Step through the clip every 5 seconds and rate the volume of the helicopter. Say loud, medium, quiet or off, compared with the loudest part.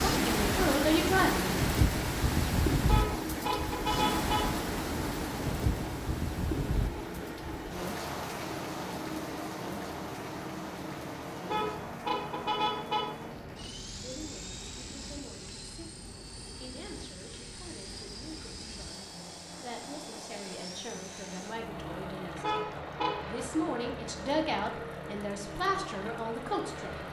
loud, loud, loud, medium, loud, loud.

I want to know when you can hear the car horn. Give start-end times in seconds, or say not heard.
2.9-4.4, 11.4-13.1, 22.4-23.3.